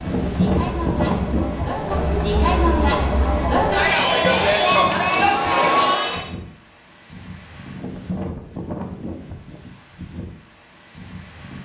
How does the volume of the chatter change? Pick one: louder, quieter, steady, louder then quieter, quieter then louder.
louder.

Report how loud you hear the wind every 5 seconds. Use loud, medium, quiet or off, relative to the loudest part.
loud, medium, quiet.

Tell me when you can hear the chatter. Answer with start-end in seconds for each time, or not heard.
0.0-6.3.